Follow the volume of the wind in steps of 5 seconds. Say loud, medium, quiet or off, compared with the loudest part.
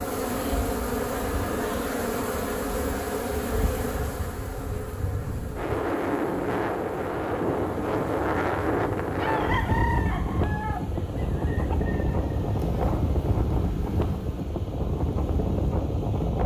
quiet, loud, loud, loud.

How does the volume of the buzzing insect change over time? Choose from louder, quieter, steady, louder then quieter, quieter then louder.
quieter.